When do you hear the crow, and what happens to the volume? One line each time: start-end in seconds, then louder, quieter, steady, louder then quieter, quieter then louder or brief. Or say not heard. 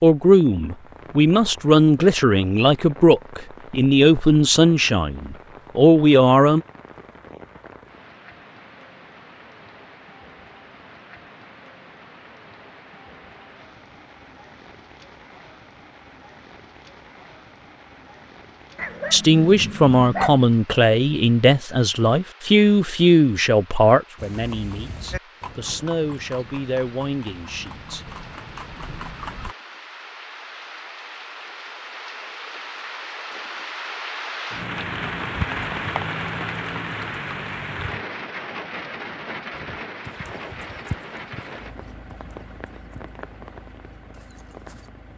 not heard.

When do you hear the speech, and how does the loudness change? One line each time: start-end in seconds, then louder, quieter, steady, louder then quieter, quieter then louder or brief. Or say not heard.
0.0-6.6 steady
19.1-28.1 quieter.